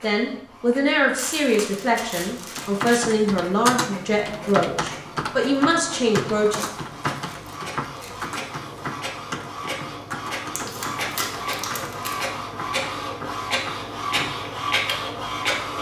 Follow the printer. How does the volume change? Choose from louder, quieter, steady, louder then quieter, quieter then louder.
louder.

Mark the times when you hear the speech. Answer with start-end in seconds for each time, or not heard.
0.0-6.6.